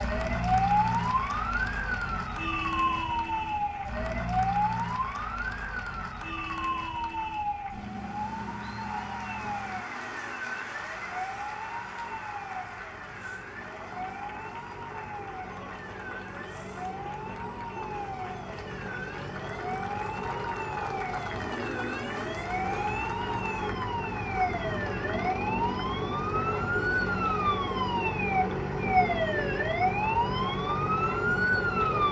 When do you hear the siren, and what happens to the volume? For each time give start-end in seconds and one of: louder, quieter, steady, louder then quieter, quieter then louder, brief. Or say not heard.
0.0-32.0 quieter then louder.